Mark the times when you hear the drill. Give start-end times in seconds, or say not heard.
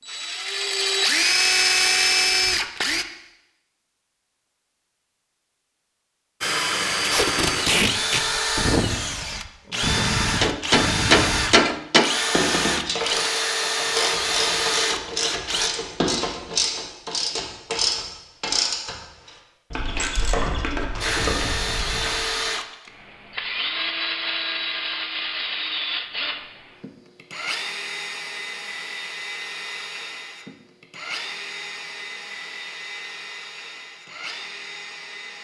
0.0-3.0, 6.4-15.7, 21.0-35.3.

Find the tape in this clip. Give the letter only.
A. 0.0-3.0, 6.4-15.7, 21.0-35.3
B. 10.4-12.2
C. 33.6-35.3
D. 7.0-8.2
D.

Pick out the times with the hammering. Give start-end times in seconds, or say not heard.
10.4-12.2.